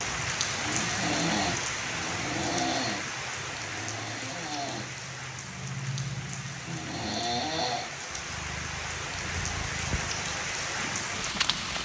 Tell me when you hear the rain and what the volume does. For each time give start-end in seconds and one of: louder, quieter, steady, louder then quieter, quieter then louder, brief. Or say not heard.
0.0-11.7 quieter then louder.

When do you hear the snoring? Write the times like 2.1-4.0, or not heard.
0.0-8.0.